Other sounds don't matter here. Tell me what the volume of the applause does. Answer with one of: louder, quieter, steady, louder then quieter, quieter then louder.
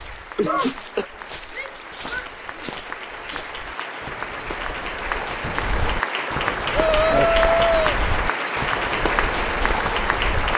louder.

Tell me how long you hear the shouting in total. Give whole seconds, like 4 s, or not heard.
2 s.